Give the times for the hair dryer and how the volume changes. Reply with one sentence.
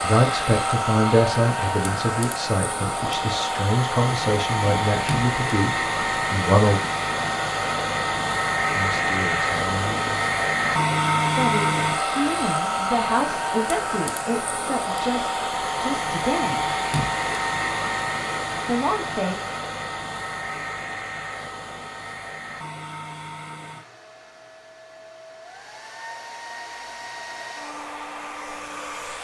The hair dryer can be heard from 0.0 to 29.1 s, getting quieter.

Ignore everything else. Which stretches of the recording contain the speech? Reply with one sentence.
You can hear the speech from 0.0 to 6.8 s, from 8.8 to 10.2 s, from 11.3 to 16.6 s and from 18.6 to 19.4 s.